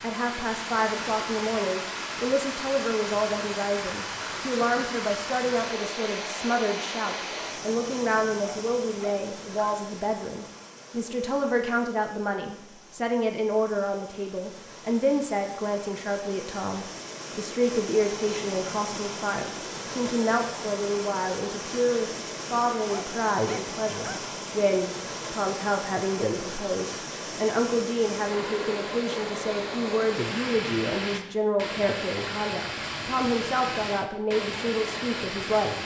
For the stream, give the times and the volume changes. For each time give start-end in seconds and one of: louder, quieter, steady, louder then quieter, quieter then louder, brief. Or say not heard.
0.0-35.8 quieter then louder.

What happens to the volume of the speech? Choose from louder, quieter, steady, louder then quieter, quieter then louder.
steady.